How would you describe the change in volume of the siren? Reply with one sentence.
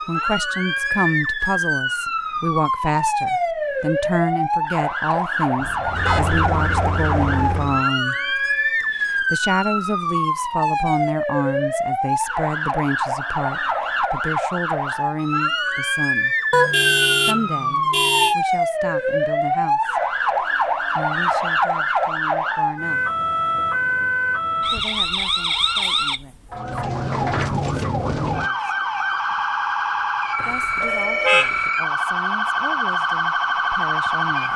The volume of the siren stays about the same.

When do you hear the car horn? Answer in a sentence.
You can hear the car horn from 5.5 to 6.3 s, from 16.5 to 18.4 s and from 30.4 to 31.7 s.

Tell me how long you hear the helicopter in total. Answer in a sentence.
The helicopter can be heard for 2 seconds in total.